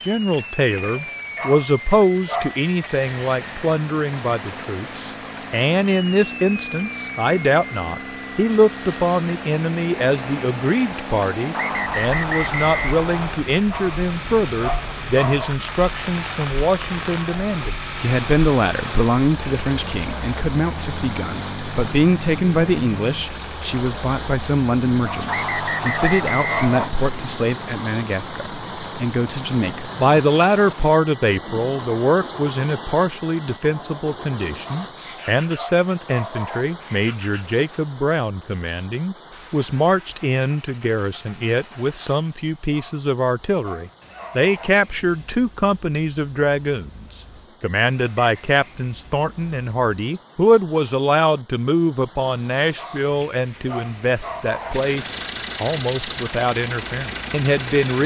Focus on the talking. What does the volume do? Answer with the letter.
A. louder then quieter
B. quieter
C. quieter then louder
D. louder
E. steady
E.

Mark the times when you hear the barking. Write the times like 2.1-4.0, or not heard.
1.4-2.9, 13.7-15.6, 25.0-26.9, 34.6-36.6, 42.7-44.7, 52.8-54.8.